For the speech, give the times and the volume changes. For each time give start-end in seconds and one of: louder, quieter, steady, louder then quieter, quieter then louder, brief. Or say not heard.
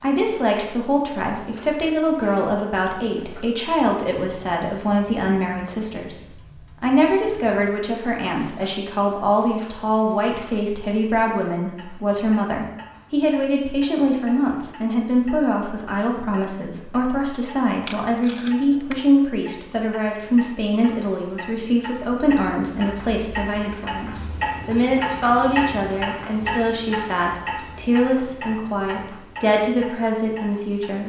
0.0-31.0 steady.